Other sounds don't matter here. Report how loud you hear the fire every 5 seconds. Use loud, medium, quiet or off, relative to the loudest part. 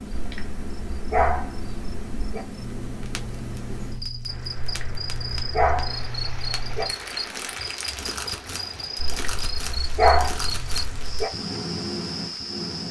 medium, loud, loud.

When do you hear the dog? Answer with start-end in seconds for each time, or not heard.
0.1-2.5, 4.5-6.8, 8.9-11.3.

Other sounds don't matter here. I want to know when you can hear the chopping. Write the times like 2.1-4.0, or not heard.
not heard.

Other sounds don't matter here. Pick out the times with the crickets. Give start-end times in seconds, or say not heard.
0.0-12.8.